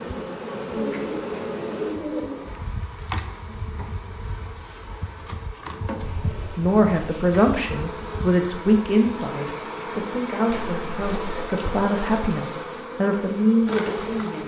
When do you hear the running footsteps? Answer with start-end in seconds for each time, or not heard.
not heard.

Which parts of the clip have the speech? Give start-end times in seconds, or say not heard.
6.5-14.4.